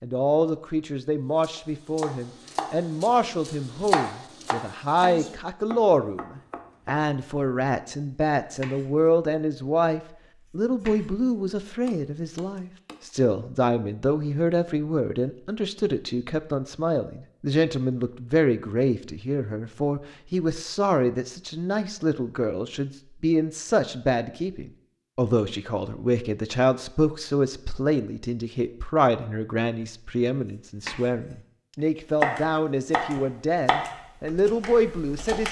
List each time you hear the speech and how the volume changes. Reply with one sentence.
The speech can be heard from 0.0 to 35.4 s, at a steady volume.